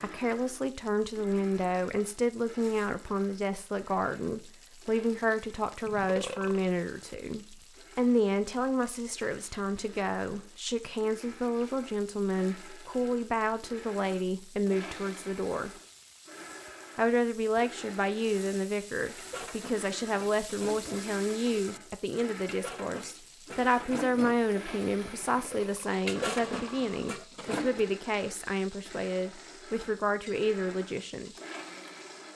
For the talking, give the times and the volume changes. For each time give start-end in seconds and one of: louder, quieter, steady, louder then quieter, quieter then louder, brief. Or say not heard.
0.0-15.7 steady
16.9-31.4 steady.